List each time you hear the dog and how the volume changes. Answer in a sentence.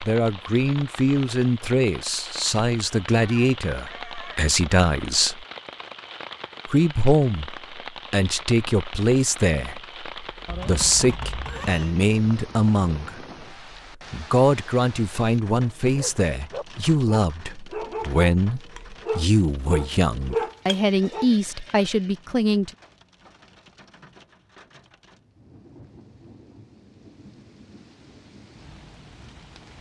You can hear the dog from 15.9 to 21.3 s, getting louder.